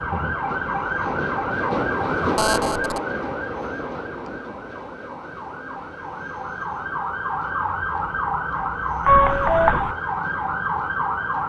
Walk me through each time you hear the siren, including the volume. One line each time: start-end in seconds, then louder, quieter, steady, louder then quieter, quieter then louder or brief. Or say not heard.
0.0-11.4 quieter then louder.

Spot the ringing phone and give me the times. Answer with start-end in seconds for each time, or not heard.
2.4-3.0, 9.1-9.9.